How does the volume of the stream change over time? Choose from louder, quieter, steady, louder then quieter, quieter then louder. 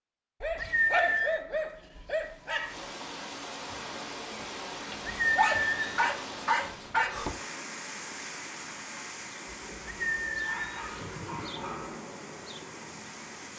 quieter.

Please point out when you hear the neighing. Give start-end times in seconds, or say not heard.
0.6-1.4, 5.0-6.1, 9.8-11.5.